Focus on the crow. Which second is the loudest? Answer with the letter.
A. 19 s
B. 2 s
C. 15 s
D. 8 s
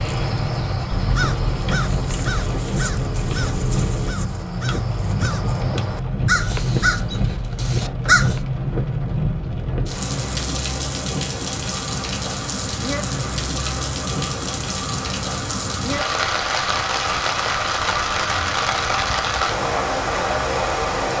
D.